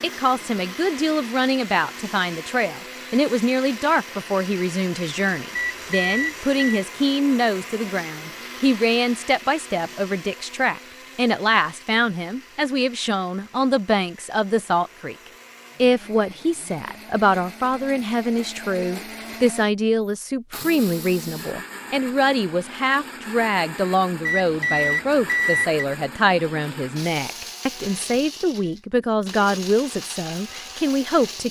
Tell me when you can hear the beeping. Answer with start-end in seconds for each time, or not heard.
5.5-6.8, 24.2-25.9.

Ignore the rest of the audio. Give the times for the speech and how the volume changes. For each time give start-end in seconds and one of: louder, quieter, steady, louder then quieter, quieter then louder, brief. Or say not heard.
0.0-15.2 steady
15.8-31.4 steady.